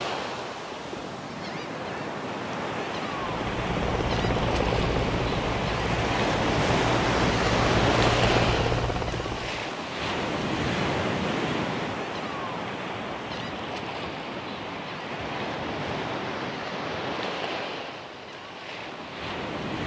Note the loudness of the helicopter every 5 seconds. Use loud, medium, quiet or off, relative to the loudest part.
loud, loud, off, off.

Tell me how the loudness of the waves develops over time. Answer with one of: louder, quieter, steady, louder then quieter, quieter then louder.
louder then quieter.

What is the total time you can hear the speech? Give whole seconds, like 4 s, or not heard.
not heard.